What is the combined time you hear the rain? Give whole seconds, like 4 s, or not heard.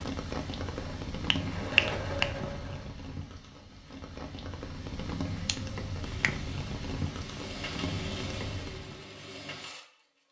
9 s.